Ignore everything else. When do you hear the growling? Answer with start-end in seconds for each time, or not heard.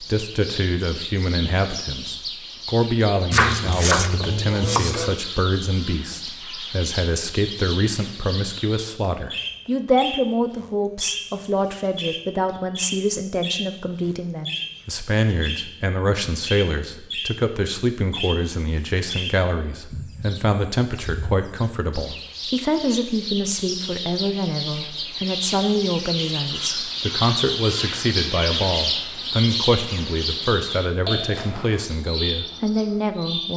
not heard.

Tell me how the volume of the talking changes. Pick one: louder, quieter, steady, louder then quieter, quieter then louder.
steady.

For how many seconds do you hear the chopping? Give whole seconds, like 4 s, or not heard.
2 s.